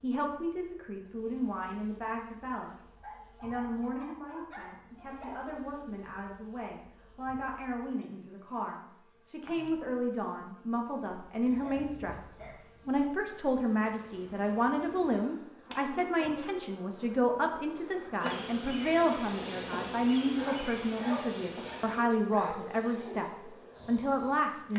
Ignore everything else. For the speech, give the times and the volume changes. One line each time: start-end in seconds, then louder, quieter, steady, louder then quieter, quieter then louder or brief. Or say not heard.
0.0-24.7 louder.